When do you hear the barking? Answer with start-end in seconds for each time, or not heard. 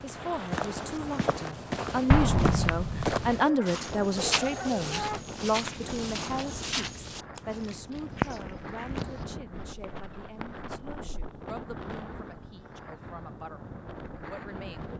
3.4-5.2.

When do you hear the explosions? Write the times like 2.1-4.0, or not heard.
2.1-3.4.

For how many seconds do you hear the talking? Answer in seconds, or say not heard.
15 s.